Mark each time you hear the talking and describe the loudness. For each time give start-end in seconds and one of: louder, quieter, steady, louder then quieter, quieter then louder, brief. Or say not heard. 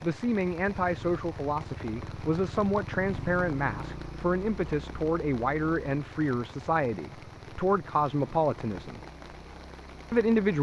0.0-9.0 steady
10.1-10.5 brief.